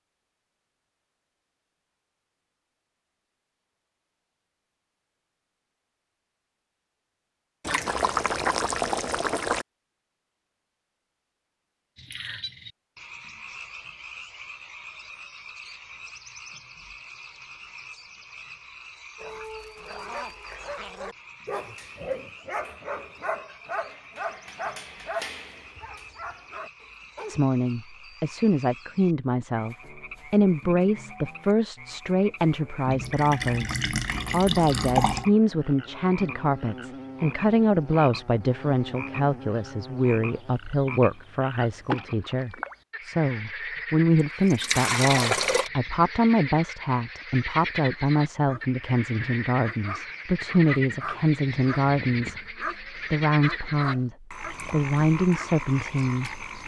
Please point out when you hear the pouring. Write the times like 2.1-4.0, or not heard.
7.7-9.7, 32.9-35.2, 44.5-45.7.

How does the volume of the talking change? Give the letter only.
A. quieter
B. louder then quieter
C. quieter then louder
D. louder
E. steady
E.